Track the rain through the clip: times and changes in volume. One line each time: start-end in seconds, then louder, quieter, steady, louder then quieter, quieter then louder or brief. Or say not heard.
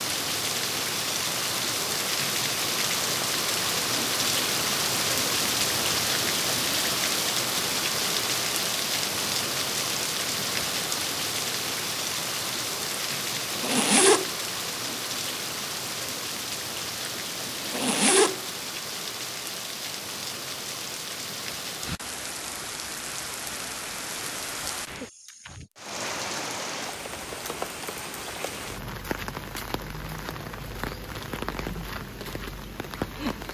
0.0-33.5 quieter.